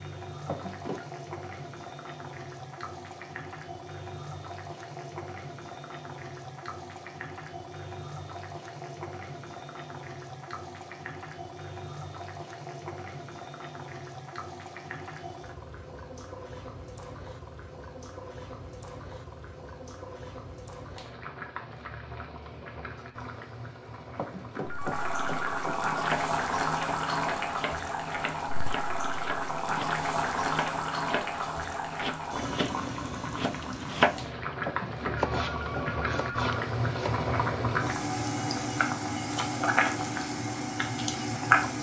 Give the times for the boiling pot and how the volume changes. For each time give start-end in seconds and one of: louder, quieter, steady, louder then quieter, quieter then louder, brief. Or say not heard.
0.0-41.7 louder.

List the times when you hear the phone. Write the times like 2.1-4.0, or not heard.
0.5-1.1, 24.1-25.9, 34.6-36.4.